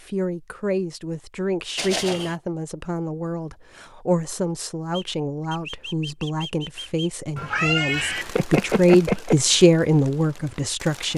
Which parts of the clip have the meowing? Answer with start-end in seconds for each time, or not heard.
1.8-2.4, 7.3-9.3.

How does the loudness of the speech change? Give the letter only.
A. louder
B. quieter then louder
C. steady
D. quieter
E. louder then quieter
A.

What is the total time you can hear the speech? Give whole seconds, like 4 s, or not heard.
11 s.